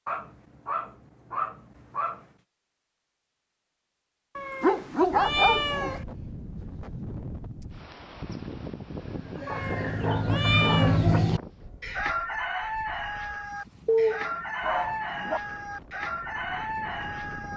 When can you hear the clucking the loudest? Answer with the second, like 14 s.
11 s.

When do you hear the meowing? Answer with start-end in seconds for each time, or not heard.
4.3-6.0, 9.4-11.0.